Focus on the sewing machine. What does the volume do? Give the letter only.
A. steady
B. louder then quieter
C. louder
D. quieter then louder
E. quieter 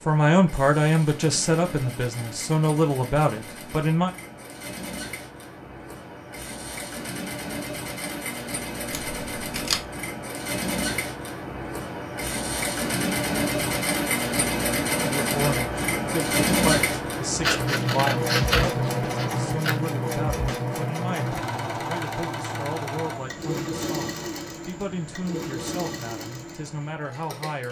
B.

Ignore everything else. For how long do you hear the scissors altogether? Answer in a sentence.
The scissors can be heard for 3 seconds in total.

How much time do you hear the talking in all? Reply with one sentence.
You can hear the talking for 17 seconds altogether.